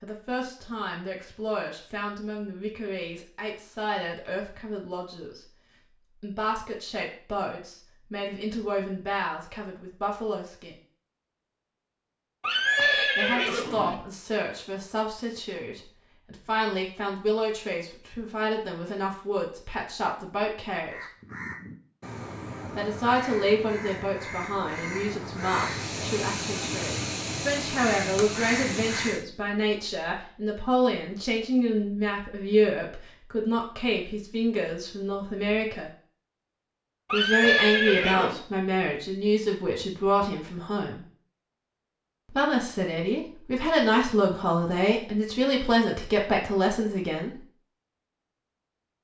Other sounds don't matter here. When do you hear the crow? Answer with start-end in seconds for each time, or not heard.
20.9-29.2.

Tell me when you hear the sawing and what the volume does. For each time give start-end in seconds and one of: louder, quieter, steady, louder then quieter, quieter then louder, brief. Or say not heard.
not heard.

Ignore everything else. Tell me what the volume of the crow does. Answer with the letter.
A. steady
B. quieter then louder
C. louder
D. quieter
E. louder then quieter
C.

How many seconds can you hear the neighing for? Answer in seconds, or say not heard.
3 s.